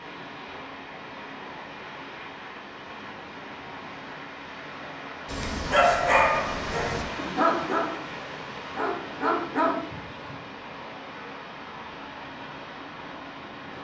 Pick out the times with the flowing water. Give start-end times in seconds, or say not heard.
0.0-13.7.